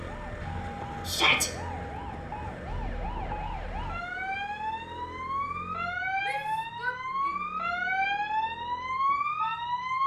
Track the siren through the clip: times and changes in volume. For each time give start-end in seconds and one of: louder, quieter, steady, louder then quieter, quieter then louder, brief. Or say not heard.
0.0-10.0 louder.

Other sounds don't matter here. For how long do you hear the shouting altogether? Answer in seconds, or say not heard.
2 s.